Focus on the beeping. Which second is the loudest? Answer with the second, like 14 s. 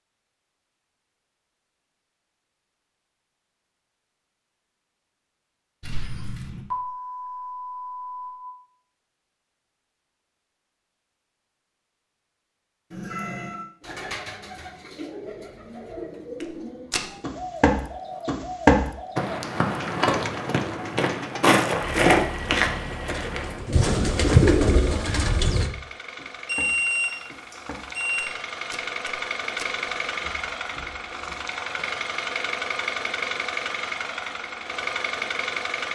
27 s.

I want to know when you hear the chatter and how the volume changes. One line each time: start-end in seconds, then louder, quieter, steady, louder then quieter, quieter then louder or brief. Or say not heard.
not heard.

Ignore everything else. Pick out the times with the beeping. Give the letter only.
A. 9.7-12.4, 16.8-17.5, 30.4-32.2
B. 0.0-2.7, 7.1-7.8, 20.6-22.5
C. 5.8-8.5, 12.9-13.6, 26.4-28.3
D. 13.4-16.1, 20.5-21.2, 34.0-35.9
C.